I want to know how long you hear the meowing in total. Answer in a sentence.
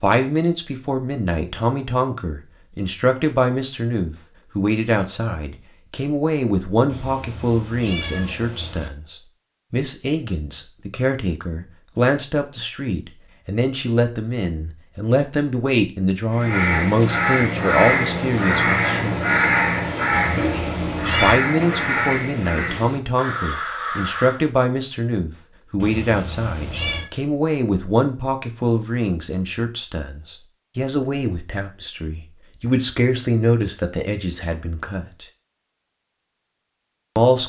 The meowing can be heard for 5 seconds in total.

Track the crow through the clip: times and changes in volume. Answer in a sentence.
The crow can be heard from 16.3 to 24.4 s, getting quieter.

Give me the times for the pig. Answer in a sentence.
You can't hear the pig here.